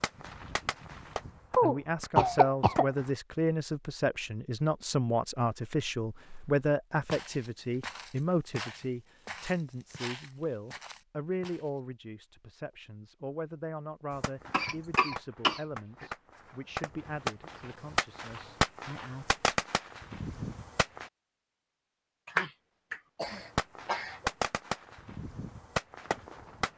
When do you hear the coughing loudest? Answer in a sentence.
The volume of the coughing peaks at 2 seconds.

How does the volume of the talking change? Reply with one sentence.
The volume of the talking goes down.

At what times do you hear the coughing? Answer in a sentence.
You can hear the coughing from 1.6 to 2.9 s, from 14.5 to 16.1 s and from 22.2 to 24.3 s.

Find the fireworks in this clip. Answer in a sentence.
The fireworks can be heard from 0.0 to 3.1 s, from 14.1 to 21.1 s and from 23.2 to 26.7 s.